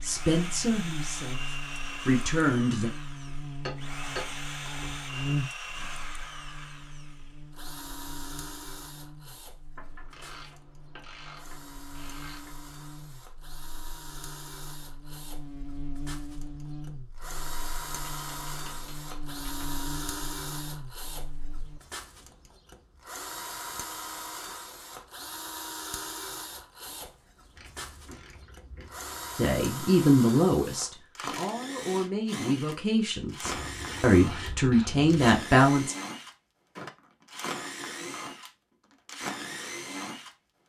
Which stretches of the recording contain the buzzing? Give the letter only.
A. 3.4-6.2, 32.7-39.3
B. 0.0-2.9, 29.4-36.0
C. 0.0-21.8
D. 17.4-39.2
C.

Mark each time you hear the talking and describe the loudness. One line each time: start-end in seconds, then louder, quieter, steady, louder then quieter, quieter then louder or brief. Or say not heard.
0.0-2.9 brief
29.4-36.0 quieter then louder.